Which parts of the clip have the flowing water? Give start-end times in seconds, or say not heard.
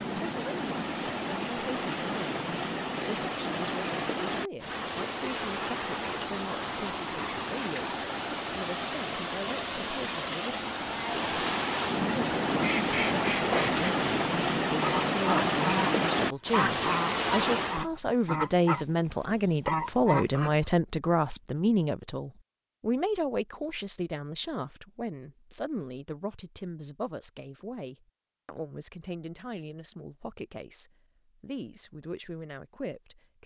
0.0-17.9.